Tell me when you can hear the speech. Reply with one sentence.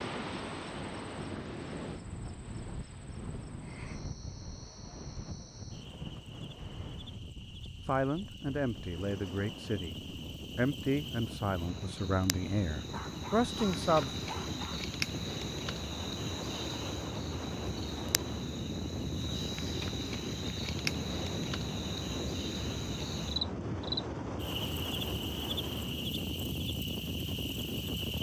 You can hear the speech from 7.8 to 14.1 s.